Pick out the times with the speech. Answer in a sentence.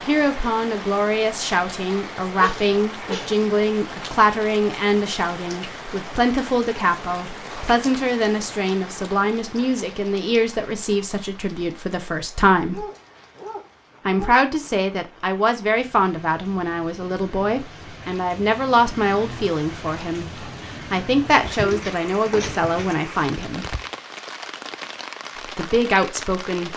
The speech can be heard from 0.1 to 12.8 s, from 14.1 to 23.6 s and from 25.6 to 26.7 s.